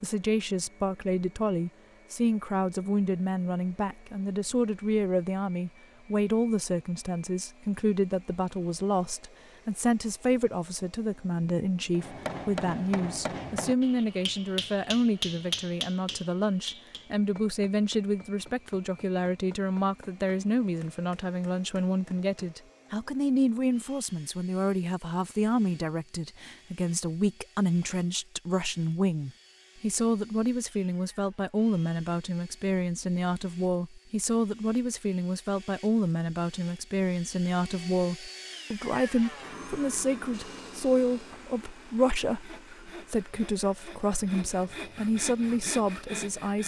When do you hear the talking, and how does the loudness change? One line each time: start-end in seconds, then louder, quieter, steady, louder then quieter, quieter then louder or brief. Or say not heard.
0.0-46.6 steady.